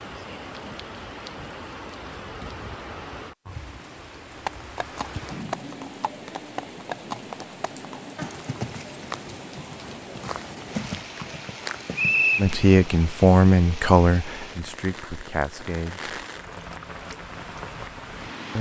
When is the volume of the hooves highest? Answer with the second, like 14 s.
12 s.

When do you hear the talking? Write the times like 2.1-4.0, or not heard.
12.3-16.1.